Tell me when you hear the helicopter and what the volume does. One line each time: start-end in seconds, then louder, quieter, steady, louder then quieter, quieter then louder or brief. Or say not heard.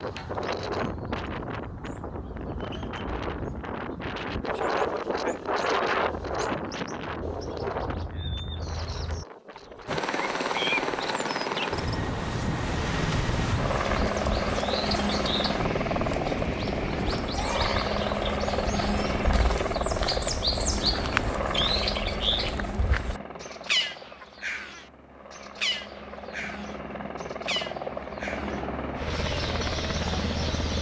9.8-30.7 quieter then louder.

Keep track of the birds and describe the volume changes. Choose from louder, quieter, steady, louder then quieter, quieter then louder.
louder then quieter.